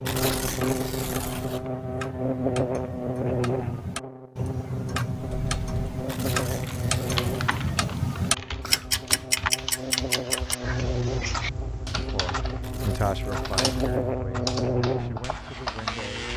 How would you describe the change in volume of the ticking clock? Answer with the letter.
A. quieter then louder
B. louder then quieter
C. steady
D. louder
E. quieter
B.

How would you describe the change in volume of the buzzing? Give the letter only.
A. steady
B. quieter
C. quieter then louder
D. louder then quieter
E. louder
C.